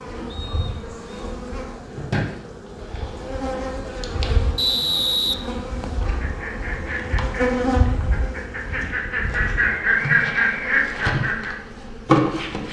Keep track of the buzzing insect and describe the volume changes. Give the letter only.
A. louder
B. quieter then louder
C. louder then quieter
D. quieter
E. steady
A.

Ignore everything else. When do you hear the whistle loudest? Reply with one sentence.
The loudest moment of the whistle is at 5 seconds.